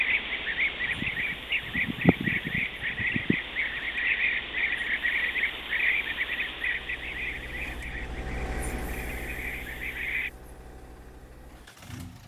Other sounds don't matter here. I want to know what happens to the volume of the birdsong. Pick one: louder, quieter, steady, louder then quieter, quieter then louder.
quieter.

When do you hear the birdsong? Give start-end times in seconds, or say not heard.
0.0-10.3.